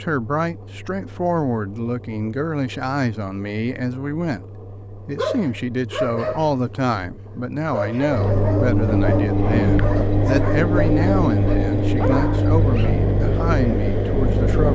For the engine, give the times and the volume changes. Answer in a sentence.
The engine can be heard from 0.0 to 14.7 s, getting louder.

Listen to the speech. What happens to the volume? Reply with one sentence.
The volume of the speech stays about the same.